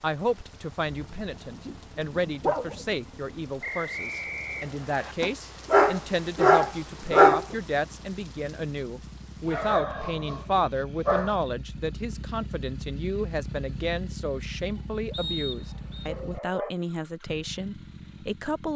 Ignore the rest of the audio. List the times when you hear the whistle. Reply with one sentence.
You can hear the whistle from 3.6 to 5.2 s and from 15.1 to 16.1 s.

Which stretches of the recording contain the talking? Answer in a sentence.
The talking can be heard from 0.0 to 18.7 s.